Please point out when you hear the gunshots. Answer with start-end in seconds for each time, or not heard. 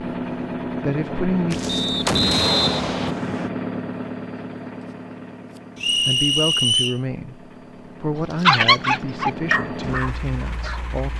1.5-3.1.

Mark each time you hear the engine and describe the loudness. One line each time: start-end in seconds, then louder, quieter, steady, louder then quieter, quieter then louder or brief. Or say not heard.
0.0-11.1 quieter then louder.